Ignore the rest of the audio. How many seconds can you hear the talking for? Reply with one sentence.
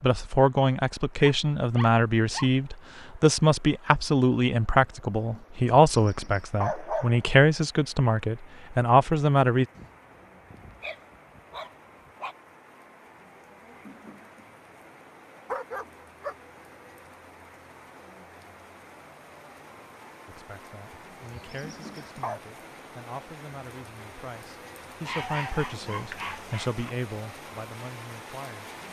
You can hear the talking for 18 seconds altogether.